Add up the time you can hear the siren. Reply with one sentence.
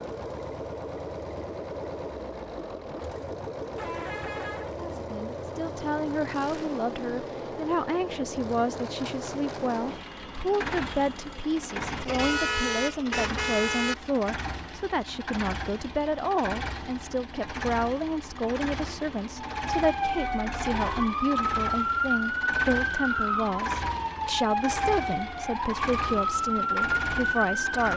The siren can be heard for 8 seconds in total.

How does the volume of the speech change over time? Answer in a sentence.
The loudness of the speech stays about the same.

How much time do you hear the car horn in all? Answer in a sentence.
You can hear the car horn for 4 seconds altogether.